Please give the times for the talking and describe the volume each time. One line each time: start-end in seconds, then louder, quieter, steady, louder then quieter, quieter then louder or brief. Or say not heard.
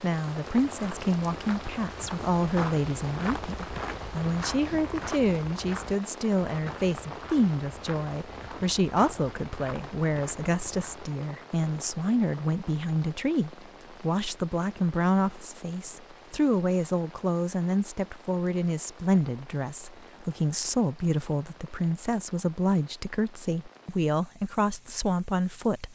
0.0-25.9 steady.